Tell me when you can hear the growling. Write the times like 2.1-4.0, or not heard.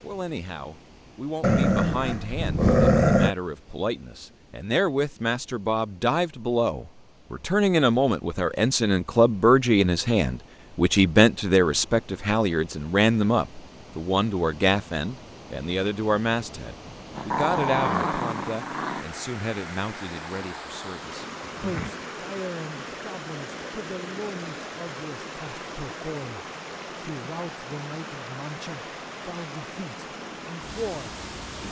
1.4-3.4, 17.1-19.1, 21.4-21.9.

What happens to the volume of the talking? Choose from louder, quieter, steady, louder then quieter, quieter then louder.
louder then quieter.